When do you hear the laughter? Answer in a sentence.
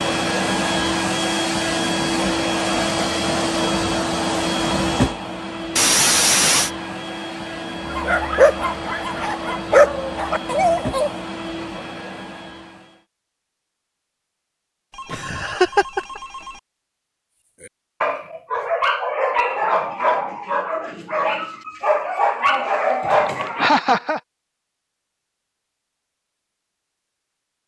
You can hear the laughter from 5.8 to 6.7 s, from 15.1 to 16.2 s and from 23.6 to 24.2 s.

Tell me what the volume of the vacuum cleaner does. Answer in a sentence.
The volume of the vacuum cleaner goes down.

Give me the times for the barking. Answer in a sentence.
The barking can be heard from 7.8 to 11.1 s and from 17.6 to 23.7 s.